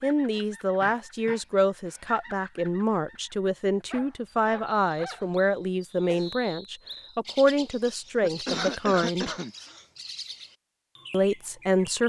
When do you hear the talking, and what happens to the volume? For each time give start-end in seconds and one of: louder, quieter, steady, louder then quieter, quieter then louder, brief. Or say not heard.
0.0-9.3 steady
11.1-12.0 brief.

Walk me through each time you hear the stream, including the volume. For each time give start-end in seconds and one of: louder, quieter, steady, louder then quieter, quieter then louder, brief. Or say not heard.
not heard.